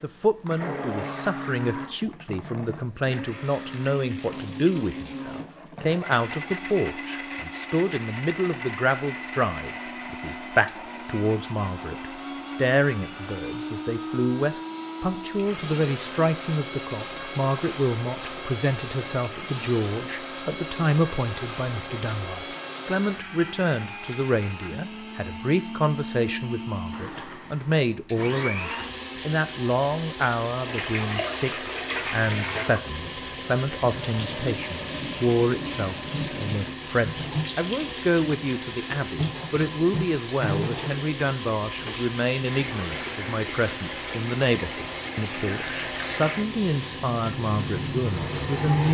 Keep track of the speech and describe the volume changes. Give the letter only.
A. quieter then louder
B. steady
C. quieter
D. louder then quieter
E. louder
B.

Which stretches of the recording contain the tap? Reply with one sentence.
The tap can be heard from 30.6 to 48.8 s.